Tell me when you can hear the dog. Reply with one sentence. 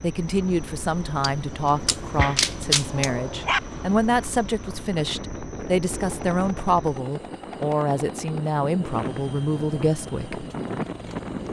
The dog can be heard from 2.1 to 3.6 s.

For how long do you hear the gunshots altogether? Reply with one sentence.
The gunshots can be heard for 2 seconds in total.